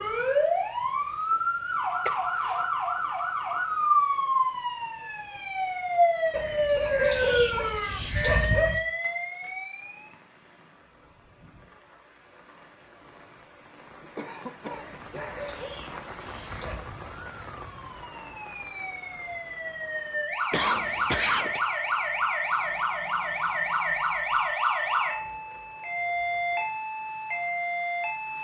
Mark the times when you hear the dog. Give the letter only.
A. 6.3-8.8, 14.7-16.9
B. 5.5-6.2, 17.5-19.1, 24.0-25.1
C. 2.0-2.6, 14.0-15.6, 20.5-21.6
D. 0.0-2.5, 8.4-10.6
A.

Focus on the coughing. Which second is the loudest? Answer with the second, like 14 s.
21 s.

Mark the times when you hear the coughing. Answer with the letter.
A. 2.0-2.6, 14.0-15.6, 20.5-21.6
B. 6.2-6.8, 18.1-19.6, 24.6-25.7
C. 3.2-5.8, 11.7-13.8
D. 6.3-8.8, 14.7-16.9
A.